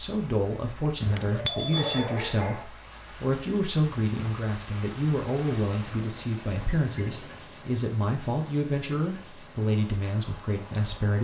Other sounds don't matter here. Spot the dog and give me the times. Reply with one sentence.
The dog can be heard from 0.8 to 2.6 s.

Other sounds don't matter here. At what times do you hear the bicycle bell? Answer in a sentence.
You can hear the bicycle bell from 1.0 to 2.0 s.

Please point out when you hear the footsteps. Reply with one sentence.
You can't hear the footsteps here.